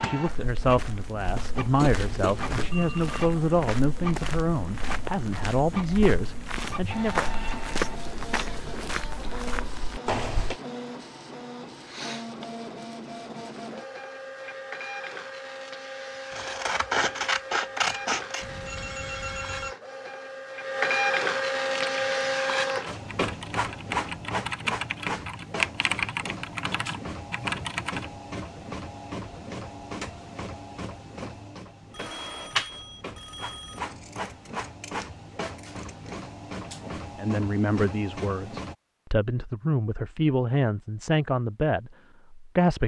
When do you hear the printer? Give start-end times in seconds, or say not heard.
0.0-38.8.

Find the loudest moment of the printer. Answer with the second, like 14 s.
21 s.